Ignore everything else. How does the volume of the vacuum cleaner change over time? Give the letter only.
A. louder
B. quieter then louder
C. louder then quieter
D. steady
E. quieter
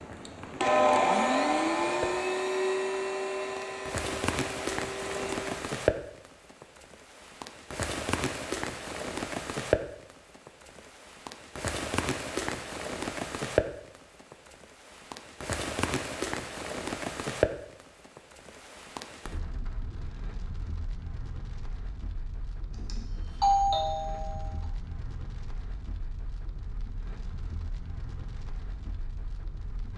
E.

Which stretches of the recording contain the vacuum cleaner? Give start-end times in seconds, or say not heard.
0.0-5.7.